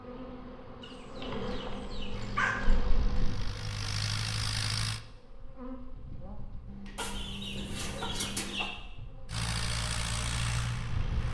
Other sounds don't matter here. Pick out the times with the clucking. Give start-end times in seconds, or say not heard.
0.8-2.8, 7.0-8.7.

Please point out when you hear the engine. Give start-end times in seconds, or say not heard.
2.1-5.0, 9.2-11.2.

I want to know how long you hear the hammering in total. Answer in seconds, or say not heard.
4 s.